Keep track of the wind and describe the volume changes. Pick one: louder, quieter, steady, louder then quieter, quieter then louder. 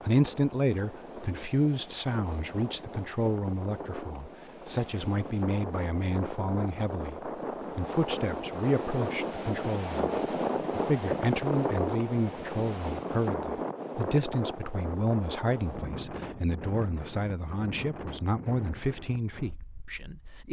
louder then quieter.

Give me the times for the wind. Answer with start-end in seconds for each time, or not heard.
0.0-20.4.